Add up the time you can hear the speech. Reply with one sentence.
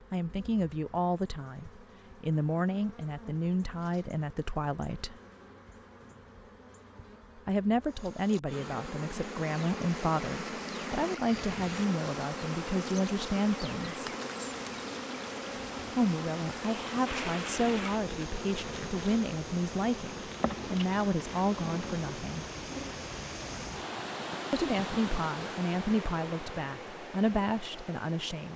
The speech can be heard for 22 seconds in total.